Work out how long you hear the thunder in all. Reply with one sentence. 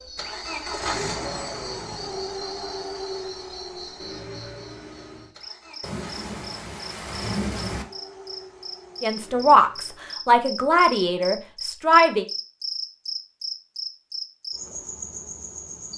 You can hear the thunder for 2 seconds altogether.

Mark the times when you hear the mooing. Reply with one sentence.
The mooing can't be heard in this clip.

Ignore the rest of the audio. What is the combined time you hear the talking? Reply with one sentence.
You can hear the talking for 3 seconds altogether.